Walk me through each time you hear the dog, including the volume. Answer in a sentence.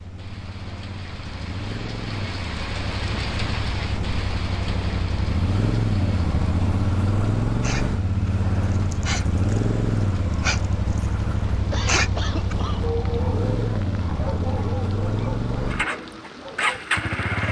You can hear the dog briefly from 7.6 to 9.7 s; briefly from 10.3 to 11.1 s; and from 11.8 to 16.9 s, getting quieter.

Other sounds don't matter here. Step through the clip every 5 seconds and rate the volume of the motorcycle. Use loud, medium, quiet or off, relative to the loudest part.
medium, loud, loud, loud.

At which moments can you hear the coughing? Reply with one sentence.
You can hear the coughing from 11.7 to 12.9 s.